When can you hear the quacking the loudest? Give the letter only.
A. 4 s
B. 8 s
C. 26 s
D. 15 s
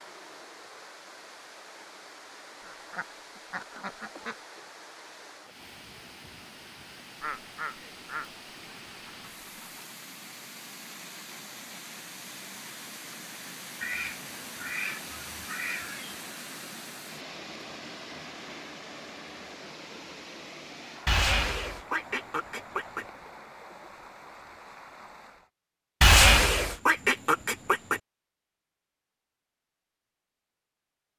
C.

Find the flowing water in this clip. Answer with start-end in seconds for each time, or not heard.
0.0-25.5.